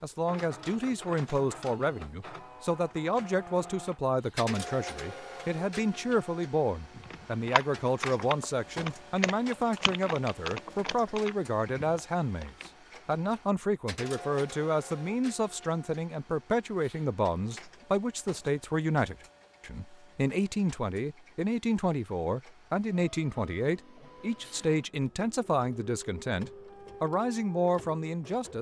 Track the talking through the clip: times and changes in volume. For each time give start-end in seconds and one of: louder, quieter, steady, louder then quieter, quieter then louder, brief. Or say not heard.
0.0-28.5 steady.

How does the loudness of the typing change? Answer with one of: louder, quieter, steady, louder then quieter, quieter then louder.
quieter.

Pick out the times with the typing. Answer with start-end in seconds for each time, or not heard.
6.9-12.7.